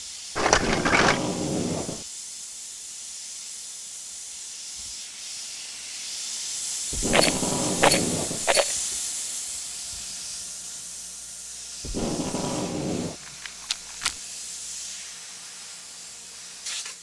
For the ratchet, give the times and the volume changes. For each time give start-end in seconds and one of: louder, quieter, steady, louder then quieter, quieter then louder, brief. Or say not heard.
not heard.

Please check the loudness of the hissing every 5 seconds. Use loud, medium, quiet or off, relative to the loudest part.
medium, loud, medium, medium.